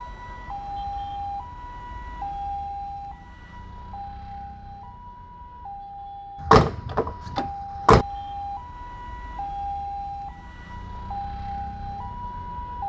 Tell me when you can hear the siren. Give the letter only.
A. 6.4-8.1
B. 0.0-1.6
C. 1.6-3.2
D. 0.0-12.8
D.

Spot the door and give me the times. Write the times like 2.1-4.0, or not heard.
6.4-8.1.